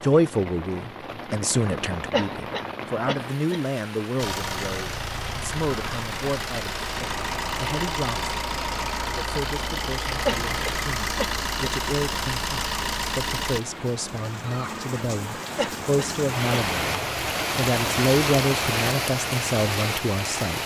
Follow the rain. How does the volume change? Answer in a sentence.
The volume of the rain goes up.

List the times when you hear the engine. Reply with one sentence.
The engine can be heard from 4.2 to 13.6 s.